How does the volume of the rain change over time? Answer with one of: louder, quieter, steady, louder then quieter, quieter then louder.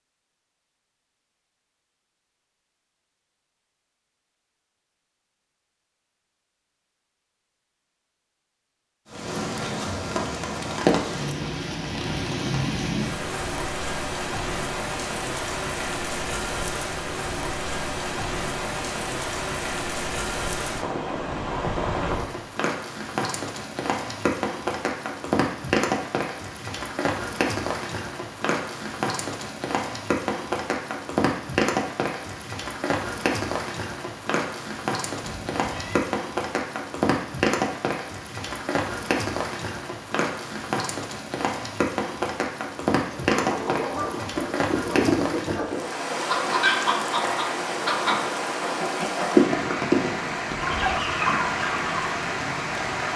steady.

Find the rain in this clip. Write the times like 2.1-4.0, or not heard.
9.1-53.1.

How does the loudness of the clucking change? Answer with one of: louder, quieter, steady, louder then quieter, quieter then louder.
louder then quieter.